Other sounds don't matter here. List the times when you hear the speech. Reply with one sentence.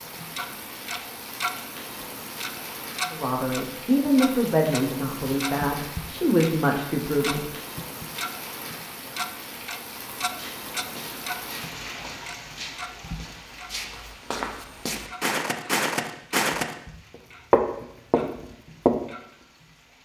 You can hear the speech from 3.1 to 7.5 s.